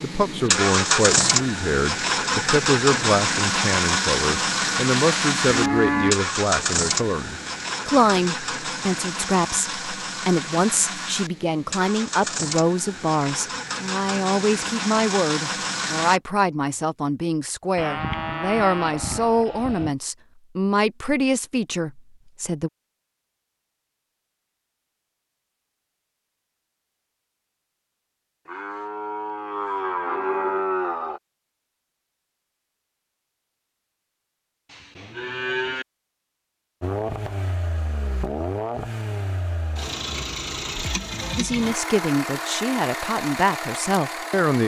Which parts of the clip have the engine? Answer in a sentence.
The engine can be heard from 0.0 to 16.2 s and from 36.8 to 44.6 s.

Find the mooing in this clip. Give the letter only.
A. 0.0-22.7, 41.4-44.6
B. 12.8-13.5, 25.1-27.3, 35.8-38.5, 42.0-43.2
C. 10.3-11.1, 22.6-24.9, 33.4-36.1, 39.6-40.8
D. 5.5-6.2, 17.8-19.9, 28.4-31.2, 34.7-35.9
D.